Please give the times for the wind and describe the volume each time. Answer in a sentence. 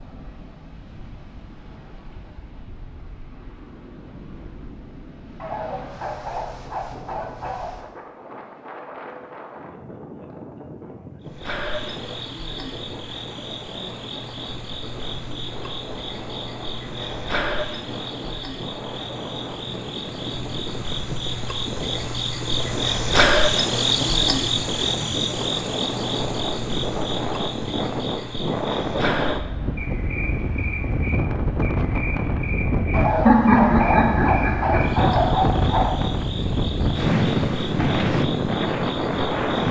The wind can be heard from 0.0 to 39.6 s, getting louder.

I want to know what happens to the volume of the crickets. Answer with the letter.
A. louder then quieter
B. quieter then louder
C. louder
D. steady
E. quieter
A.